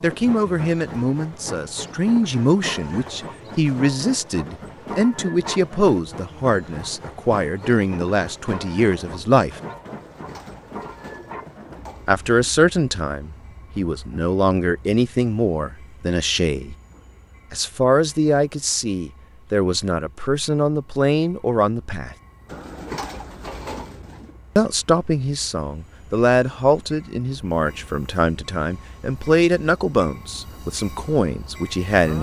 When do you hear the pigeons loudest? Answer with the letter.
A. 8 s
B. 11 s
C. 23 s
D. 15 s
C.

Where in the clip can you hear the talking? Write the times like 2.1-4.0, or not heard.
0.0-9.6, 12.1-16.8, 17.5-22.1, 24.6-32.1.